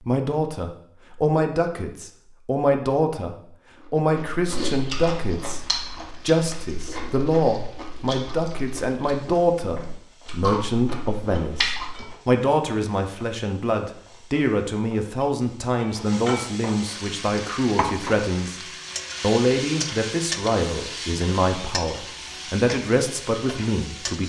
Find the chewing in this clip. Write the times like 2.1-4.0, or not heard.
3.6-12.2.